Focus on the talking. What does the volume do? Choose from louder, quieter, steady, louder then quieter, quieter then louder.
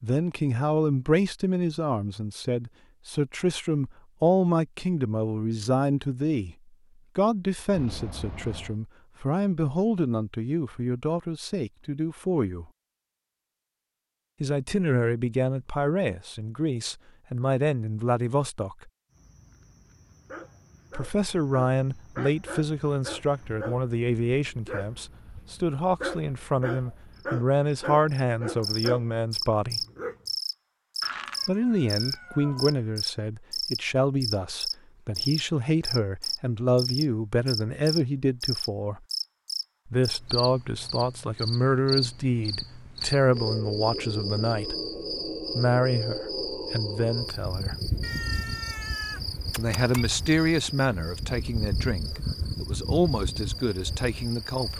steady.